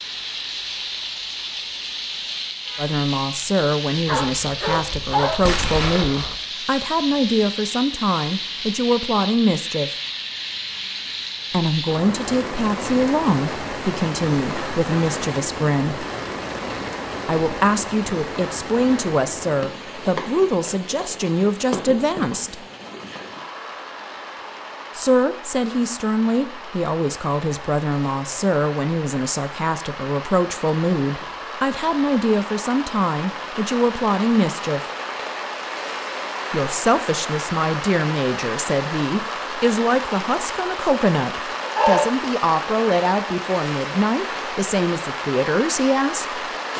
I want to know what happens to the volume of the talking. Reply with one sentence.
The volume of the talking stays about the same.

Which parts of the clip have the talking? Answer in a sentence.
You can hear the talking from 2.8 to 9.9 s, from 11.5 to 16.1 s, from 17.2 to 22.6 s, from 24.9 to 34.8 s and from 36.5 to 46.4 s.